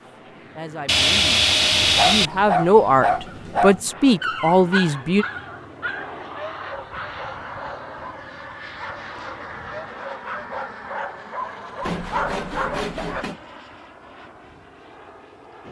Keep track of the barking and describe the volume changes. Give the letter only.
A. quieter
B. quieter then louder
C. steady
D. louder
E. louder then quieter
B.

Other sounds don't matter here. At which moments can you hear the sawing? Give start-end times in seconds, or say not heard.
0.8-2.3, 11.8-13.4.